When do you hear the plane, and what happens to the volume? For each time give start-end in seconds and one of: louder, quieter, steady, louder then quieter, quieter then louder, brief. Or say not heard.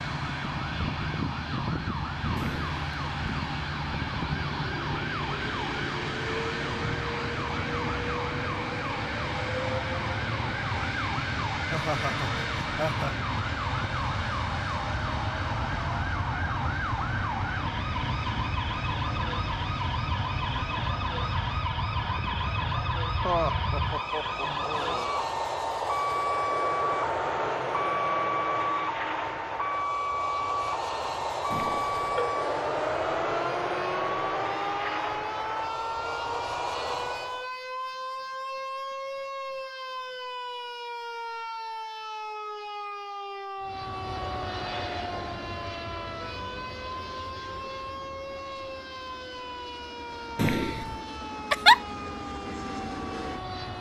0.0-37.5 steady
43.6-53.7 quieter then louder.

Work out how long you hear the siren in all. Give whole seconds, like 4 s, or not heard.
54 s.